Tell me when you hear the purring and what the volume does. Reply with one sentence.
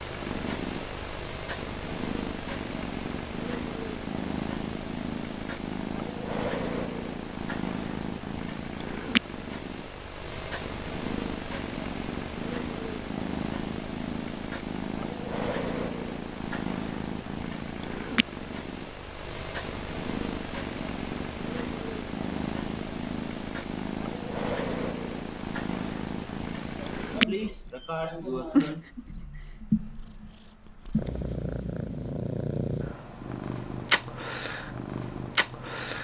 The purring can be heard from 0.0 to 35.9 s, at a steady volume.